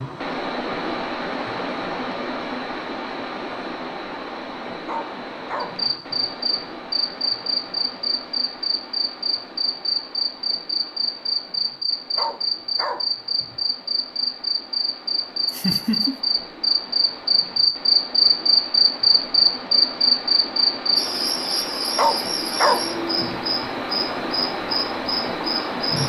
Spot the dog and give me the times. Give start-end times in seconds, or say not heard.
4.8-6.2, 12.2-13.6, 21.9-23.4.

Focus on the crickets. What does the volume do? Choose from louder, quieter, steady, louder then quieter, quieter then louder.
louder then quieter.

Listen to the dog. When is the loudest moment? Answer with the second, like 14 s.
23 s.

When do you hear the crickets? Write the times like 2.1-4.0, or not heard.
5.6-26.0.